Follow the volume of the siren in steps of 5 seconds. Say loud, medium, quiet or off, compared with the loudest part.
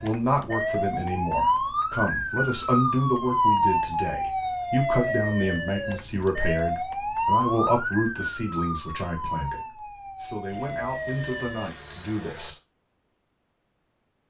loud, loud, medium.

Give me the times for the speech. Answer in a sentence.
You can hear the speech from 0.0 to 12.6 s.